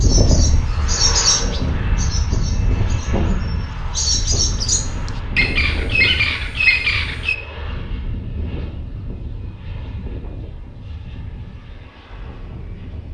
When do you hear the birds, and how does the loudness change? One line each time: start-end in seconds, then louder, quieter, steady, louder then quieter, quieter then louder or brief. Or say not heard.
0.0-7.3 quieter then louder.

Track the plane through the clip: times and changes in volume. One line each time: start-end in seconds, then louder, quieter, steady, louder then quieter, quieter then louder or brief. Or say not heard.
0.0-13.0 quieter.